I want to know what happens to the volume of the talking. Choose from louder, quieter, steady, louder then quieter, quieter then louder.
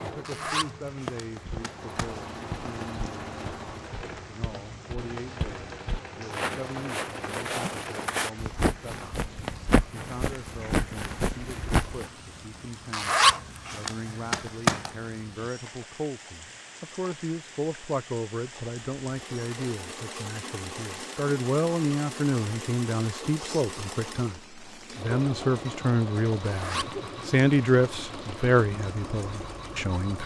louder.